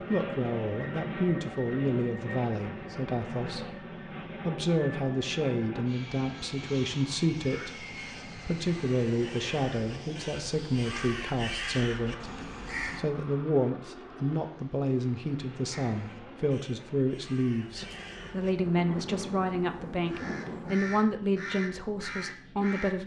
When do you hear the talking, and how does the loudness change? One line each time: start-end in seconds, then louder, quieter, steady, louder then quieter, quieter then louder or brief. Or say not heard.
0.0-23.0 steady.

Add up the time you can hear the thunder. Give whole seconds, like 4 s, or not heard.
3 s.